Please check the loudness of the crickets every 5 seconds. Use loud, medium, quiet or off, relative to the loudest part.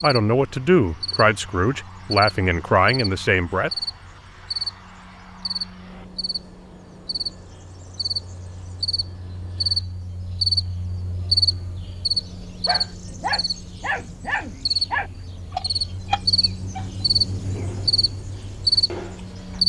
medium, medium, loud, loud.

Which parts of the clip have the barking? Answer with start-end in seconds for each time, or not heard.
12.7-19.6.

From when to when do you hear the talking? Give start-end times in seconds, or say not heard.
0.0-3.7.